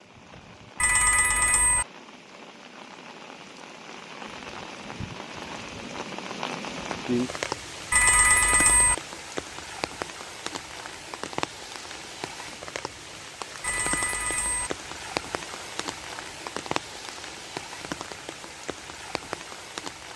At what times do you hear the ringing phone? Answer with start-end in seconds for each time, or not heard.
0.8-1.9, 7.9-8.9, 13.6-14.7.